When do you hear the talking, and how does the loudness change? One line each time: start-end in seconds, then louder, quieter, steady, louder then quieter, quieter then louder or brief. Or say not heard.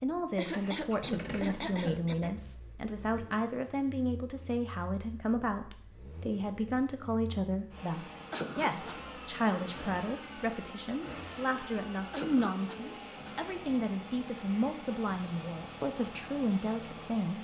0.0-17.3 steady.